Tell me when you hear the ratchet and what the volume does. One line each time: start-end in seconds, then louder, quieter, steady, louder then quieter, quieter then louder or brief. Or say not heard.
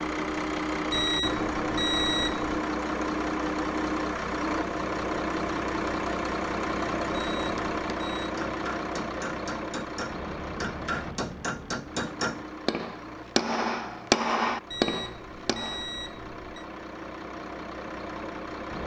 not heard.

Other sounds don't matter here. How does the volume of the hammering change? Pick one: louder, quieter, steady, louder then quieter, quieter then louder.
louder.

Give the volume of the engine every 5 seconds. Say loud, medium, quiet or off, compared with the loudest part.
loud, loud, medium, medium.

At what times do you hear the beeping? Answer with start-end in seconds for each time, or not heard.
0.9-2.6, 7.2-8.3, 14.7-16.6.